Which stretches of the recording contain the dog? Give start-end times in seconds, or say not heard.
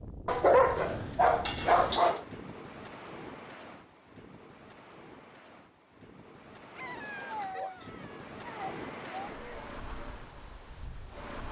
0.2-2.2, 6.8-9.7.